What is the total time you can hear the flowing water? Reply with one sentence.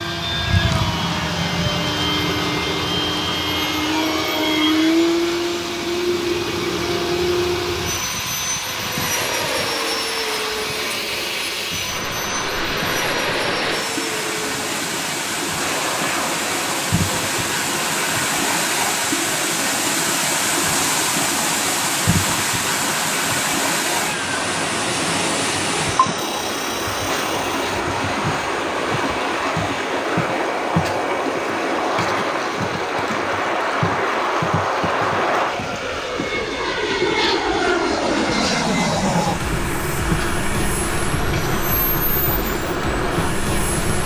You can hear the flowing water for 44 seconds altogether.